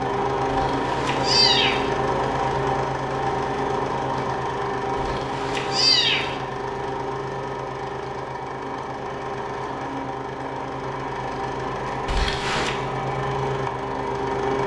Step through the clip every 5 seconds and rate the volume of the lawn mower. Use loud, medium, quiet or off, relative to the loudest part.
loud, medium, loud.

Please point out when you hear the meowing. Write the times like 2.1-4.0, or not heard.
0.5-1.9, 5.0-6.3, 12.1-12.8.